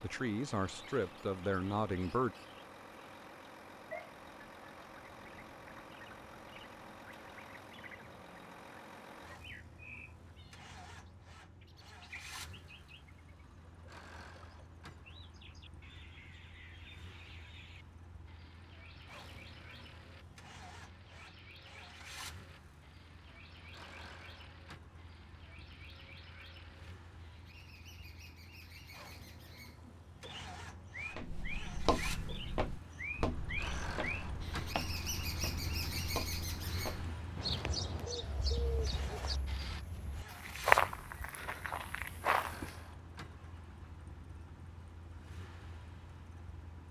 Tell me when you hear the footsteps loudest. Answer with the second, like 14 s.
41 s.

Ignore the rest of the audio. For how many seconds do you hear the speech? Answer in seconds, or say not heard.
2 s.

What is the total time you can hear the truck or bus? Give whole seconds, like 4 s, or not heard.
47 s.